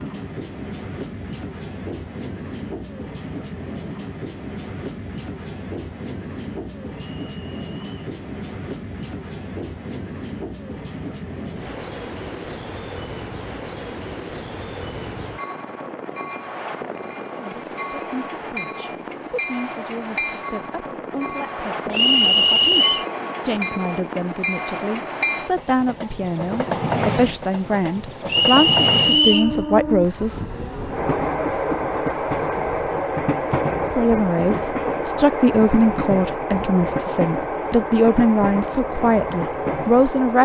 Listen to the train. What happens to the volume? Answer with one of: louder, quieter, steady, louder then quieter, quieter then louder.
louder.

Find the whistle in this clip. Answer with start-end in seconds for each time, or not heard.
7.0-8.0, 21.9-23.1, 28.2-29.5.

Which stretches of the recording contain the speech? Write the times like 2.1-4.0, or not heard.
17.4-30.4, 33.9-40.4.